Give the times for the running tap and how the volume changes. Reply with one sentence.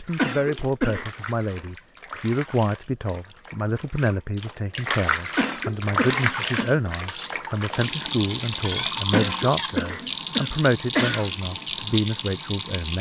The running tap can be heard from 0.0 to 12.9 s, getting louder.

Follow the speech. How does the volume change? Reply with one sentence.
The volume of the speech stays about the same.